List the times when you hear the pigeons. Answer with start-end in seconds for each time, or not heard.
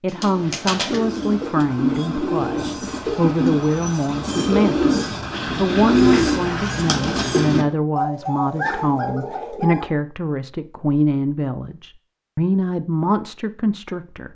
0.1-9.9.